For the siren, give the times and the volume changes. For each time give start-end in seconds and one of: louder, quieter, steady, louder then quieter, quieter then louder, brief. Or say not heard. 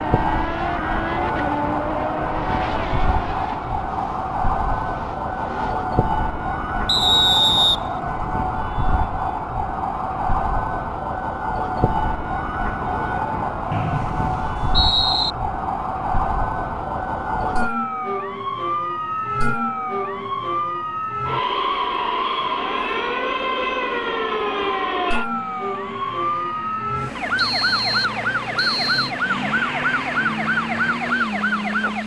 0.0-32.0 steady.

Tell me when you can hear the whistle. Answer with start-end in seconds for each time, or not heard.
6.8-8.2, 13.7-15.3, 27.4-29.1.